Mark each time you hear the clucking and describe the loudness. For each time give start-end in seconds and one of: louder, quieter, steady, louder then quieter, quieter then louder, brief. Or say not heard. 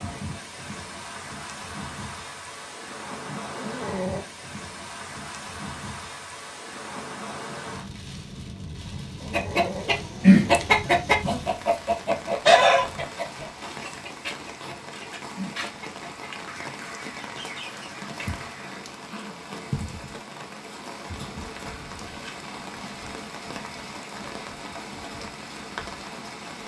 9.3-18.7 quieter.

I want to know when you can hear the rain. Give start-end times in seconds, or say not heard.
0.0-26.6.